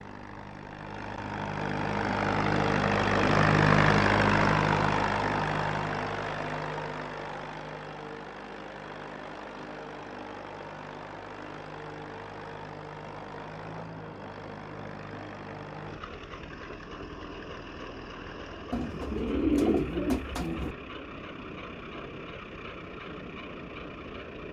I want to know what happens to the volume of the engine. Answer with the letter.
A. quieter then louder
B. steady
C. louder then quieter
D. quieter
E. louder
D.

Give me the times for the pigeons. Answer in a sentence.
You can hear the pigeons from 18.7 to 20.8 s.